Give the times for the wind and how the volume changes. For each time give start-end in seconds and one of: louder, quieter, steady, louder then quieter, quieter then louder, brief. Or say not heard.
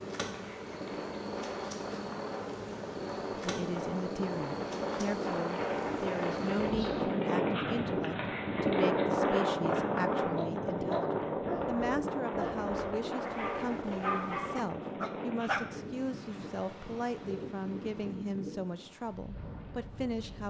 0.0-20.4 louder then quieter.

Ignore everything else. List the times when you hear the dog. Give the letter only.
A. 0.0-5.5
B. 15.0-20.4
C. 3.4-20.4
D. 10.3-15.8
D.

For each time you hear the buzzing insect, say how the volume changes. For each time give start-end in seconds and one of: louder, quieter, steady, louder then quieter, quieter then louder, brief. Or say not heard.
0.0-7.0 steady.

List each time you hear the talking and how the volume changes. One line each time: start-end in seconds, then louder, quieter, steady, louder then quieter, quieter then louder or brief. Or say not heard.
3.4-20.4 steady.